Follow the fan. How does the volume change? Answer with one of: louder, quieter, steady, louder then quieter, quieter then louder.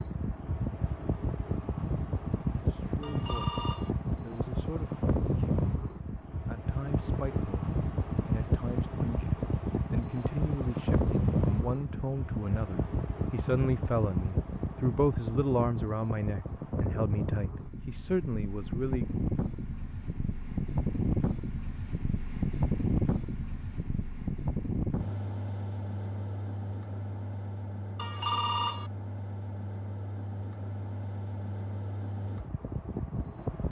quieter.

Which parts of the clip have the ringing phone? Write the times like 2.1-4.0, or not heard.
3.0-3.9, 27.9-28.9.